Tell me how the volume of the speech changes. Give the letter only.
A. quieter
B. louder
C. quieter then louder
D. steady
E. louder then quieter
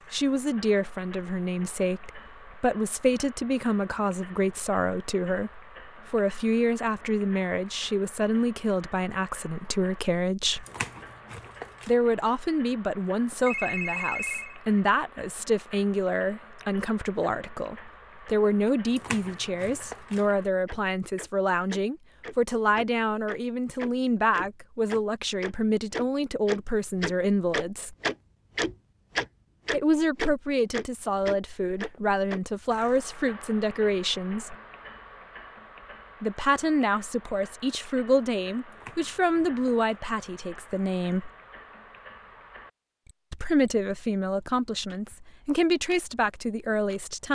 D.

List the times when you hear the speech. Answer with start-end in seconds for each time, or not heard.
0.1-10.7, 11.8-27.9, 29.7-34.5, 36.2-41.3, 43.3-47.2.